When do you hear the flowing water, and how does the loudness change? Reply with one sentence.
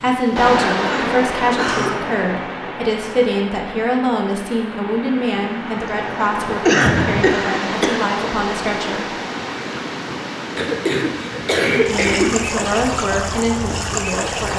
The flowing water can be heard from 0.0 to 14.5 s, getting quieter then louder.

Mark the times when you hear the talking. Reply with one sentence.
The talking can be heard from 0.0 to 9.1 s and from 11.6 to 14.5 s.